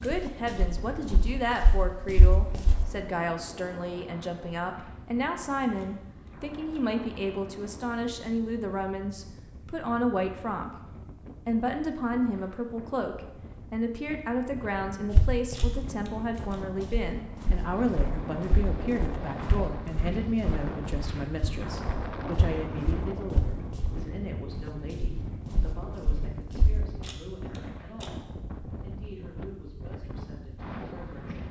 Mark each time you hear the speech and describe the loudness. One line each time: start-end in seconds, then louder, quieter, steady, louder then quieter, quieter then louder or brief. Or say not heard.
0.0-31.4 quieter.